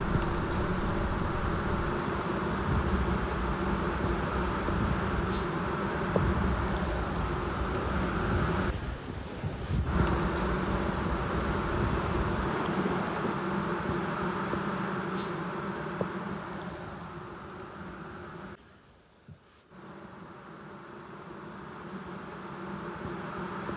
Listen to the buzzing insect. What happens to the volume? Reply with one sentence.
The volume of the buzzing insect goes down.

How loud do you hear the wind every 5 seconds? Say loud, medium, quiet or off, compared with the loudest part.
loud, loud, loud, off, off.